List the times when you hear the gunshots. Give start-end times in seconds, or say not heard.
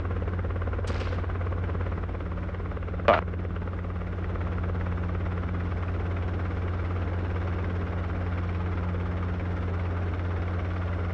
0.8-1.4.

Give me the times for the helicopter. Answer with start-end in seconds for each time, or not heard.
0.0-11.1.